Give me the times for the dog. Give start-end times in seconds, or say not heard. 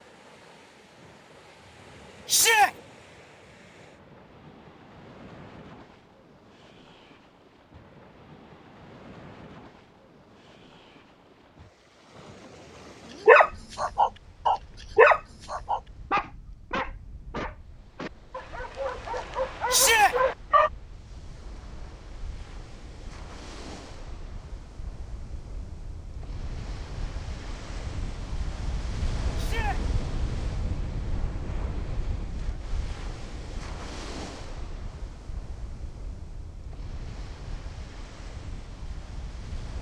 13.2-20.7.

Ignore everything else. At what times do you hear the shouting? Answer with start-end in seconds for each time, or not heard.
2.2-2.7, 19.7-20.1, 29.4-29.8.